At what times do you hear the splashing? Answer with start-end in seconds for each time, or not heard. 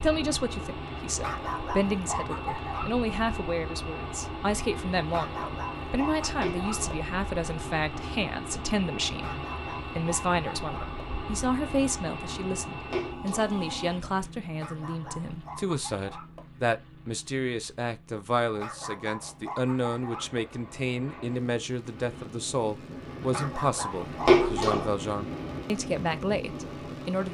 6.4-7.0, 12.9-13.6, 24.2-24.9.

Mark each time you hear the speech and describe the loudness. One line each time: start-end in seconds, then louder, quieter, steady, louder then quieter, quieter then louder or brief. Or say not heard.
0.0-27.2 steady.